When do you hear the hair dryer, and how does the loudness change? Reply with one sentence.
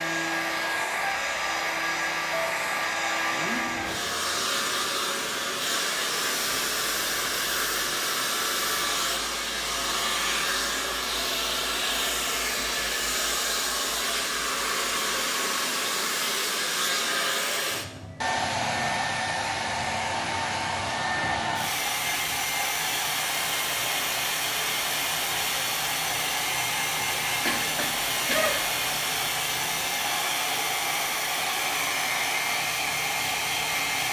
You can hear the hair dryer from 0.0 to 34.0 s, at a steady volume.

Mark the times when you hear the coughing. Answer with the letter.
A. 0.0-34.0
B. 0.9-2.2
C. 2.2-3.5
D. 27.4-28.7
D.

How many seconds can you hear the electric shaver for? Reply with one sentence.
The electric shaver can't be heard in this clip.